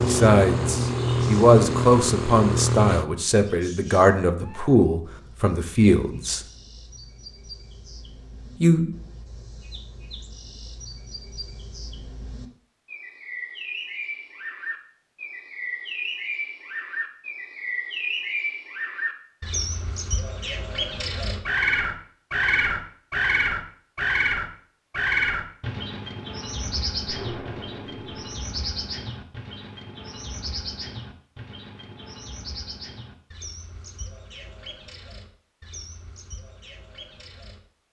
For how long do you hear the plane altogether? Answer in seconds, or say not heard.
3 s.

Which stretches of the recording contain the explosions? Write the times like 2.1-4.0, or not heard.
27.1-28.2.